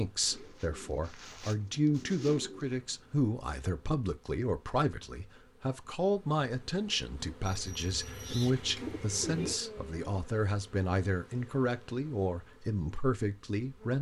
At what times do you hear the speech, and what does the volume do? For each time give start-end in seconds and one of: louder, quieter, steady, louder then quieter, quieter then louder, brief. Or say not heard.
0.0-13.9 steady.